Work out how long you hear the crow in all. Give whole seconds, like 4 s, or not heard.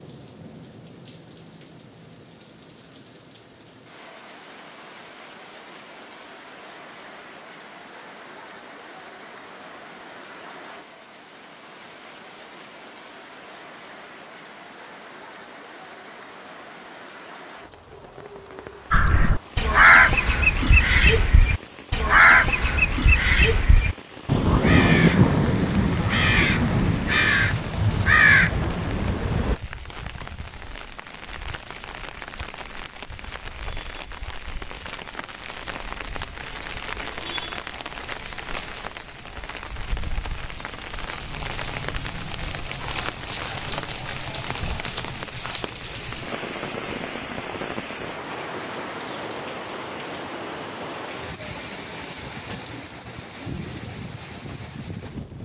11 s.